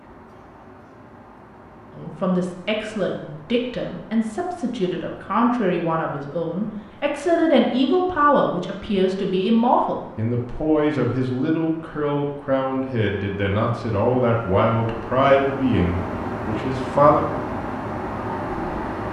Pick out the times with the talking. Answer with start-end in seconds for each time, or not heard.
1.9-17.2.